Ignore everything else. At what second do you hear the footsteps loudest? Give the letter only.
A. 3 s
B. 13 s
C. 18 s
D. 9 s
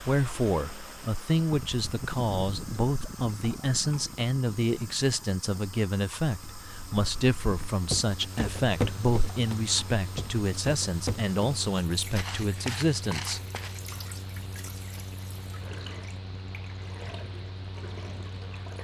D.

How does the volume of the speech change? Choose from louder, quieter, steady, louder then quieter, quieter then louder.
steady.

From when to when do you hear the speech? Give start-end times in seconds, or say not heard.
0.1-13.4.